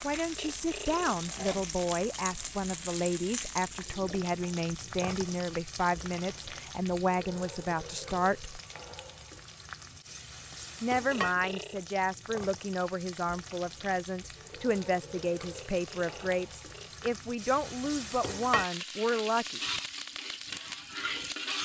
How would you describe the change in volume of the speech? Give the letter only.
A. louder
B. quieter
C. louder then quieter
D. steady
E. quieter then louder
D.